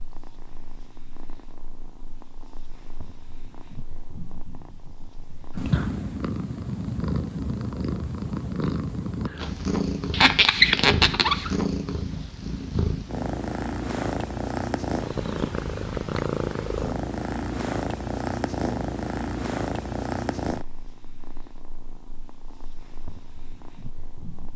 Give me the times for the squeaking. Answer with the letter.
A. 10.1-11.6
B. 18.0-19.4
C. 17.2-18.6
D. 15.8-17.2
A.